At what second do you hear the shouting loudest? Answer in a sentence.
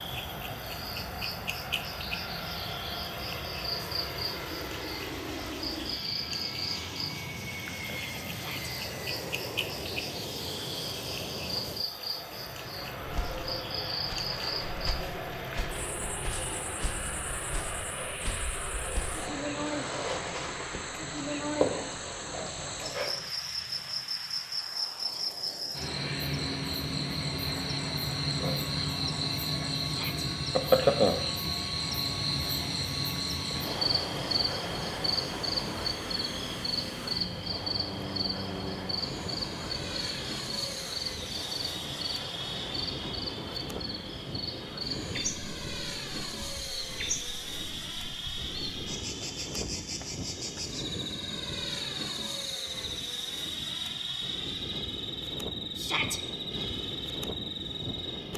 The loudest moment of the shouting is at 56 seconds.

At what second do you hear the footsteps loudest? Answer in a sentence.
The loudest moment of the footsteps is at 22 seconds.